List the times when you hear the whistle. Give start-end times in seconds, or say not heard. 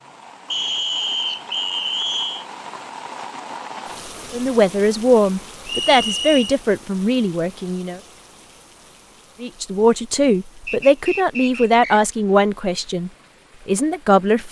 0.5-2.5, 5.7-6.5, 10.7-12.0.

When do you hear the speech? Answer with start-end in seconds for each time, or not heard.
4.3-8.0, 9.4-14.4.